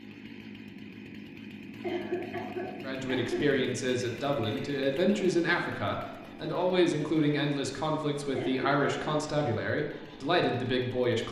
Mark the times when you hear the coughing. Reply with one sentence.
The coughing can be heard from 1.8 to 3.5 s and from 8.3 to 9.2 s.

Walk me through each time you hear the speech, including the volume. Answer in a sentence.
The speech can be heard from 2.8 to 11.2 s, at a steady volume.